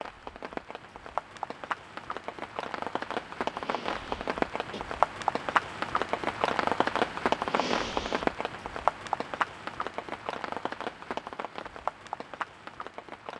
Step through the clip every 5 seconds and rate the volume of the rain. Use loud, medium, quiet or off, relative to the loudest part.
medium, loud, medium.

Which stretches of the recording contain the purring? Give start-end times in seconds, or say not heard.
not heard.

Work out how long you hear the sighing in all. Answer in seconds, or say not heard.
2 s.